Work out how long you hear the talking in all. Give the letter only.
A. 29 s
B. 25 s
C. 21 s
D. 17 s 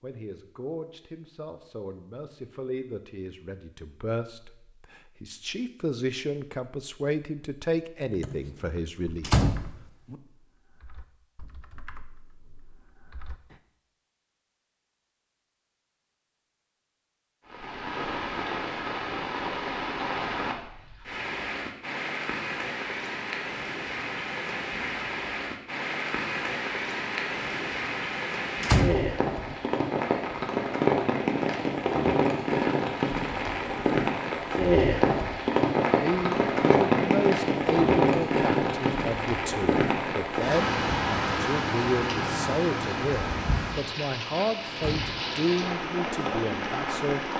C.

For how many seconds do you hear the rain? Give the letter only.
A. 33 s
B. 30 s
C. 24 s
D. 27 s
B.